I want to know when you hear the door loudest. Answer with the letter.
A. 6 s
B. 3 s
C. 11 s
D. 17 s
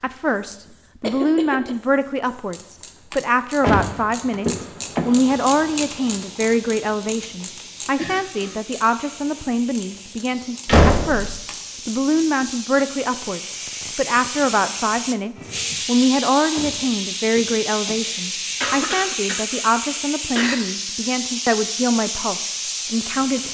C.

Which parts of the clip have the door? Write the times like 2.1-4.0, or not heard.
3.6-5.3, 10.7-11.4, 16.5-18.2.